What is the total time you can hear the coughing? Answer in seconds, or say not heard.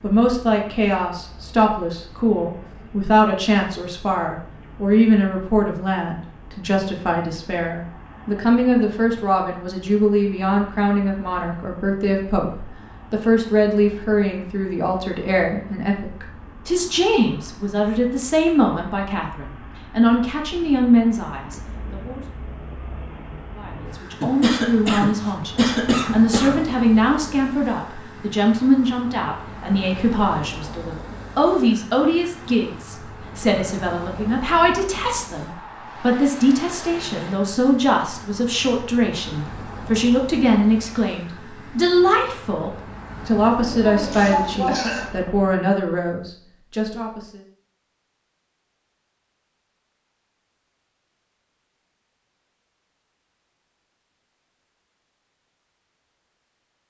4 s.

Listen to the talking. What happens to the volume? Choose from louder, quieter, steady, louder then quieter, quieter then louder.
steady.